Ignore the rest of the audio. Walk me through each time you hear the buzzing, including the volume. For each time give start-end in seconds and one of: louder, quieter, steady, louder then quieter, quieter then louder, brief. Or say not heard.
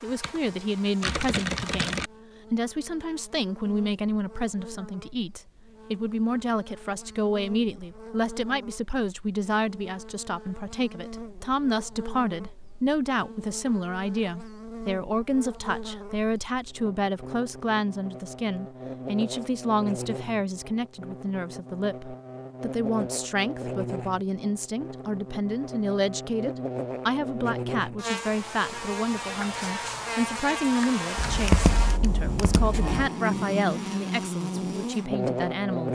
0.0-35.9 louder.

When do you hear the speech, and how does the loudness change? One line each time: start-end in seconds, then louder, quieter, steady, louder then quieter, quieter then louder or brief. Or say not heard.
0.0-35.9 steady.